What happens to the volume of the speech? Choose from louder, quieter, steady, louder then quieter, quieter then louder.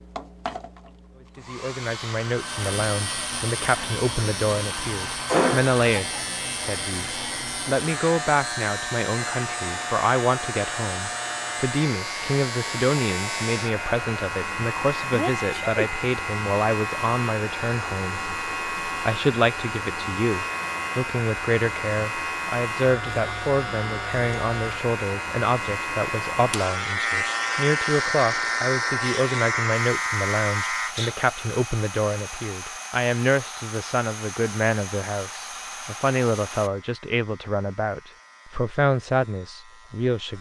steady.